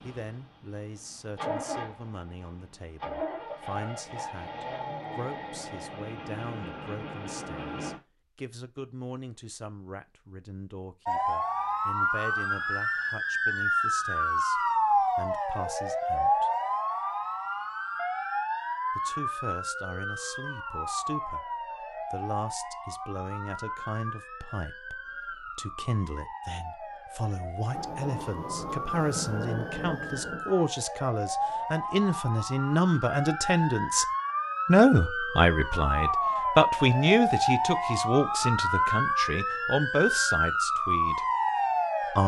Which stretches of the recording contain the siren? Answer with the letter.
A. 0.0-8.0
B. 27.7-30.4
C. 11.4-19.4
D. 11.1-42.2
D.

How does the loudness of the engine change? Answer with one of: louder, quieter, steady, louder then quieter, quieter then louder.
steady.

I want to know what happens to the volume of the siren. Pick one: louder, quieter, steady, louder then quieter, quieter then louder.
quieter then louder.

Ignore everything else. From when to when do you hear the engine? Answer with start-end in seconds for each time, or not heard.
0.0-8.0.